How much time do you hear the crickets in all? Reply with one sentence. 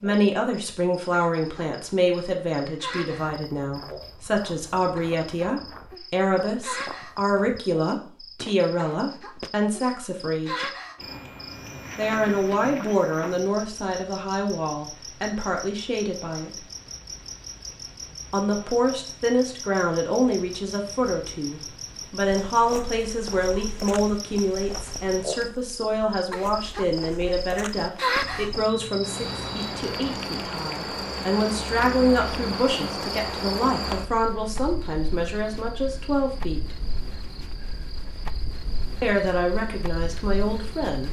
You can hear the crickets for 41 seconds altogether.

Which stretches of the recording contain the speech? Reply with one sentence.
You can hear the speech from 0.0 to 10.7 s, from 11.9 to 16.5 s, from 18.3 to 36.6 s and from 39.0 to 41.0 s.